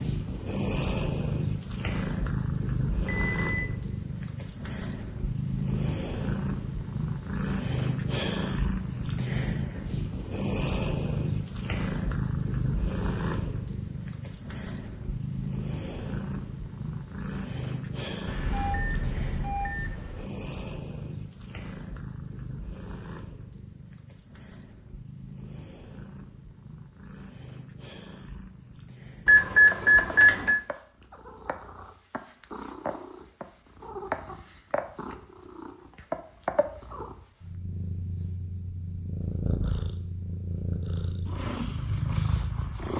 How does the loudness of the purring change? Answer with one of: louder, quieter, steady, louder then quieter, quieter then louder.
quieter then louder.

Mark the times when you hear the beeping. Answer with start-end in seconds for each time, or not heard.
3.0-3.8, 18.2-20.2, 29.2-30.6.